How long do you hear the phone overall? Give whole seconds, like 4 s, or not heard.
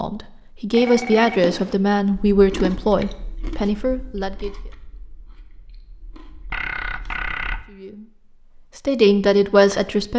2 s.